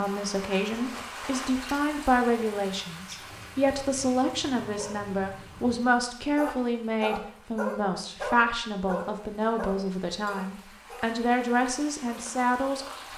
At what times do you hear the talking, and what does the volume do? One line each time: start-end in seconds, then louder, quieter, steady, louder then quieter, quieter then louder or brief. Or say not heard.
0.0-13.1 steady.